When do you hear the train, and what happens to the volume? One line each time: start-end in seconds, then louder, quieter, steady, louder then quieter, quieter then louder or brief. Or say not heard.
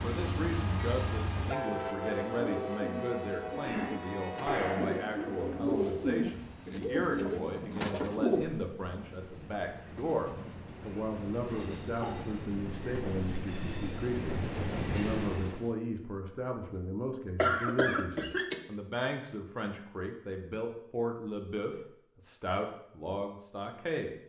0.0-15.8 quieter then louder.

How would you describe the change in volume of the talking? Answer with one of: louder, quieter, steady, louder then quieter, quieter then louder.
steady.